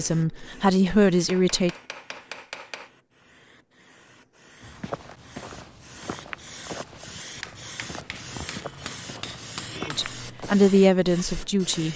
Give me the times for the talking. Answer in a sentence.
The talking can be heard from 0.0 to 1.7 s and from 9.8 to 11.9 s.